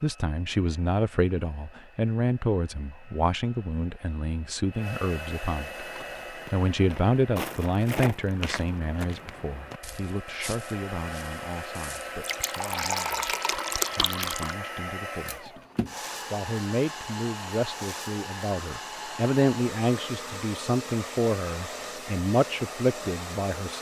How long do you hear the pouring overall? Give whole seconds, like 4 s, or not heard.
2 s.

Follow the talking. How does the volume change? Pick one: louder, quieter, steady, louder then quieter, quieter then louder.
quieter then louder.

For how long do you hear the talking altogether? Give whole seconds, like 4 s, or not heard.
22 s.